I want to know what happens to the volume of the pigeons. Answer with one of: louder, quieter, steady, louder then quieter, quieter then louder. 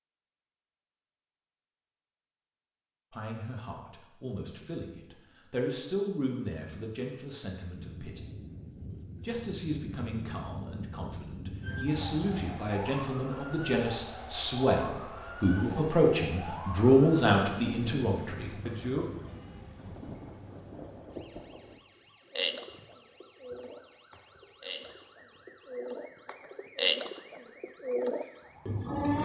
louder.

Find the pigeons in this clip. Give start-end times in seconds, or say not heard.
22.3-29.1.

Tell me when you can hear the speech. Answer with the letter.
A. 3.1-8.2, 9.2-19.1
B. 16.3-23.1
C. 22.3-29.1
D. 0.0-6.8
A.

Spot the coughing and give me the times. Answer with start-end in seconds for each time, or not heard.
not heard.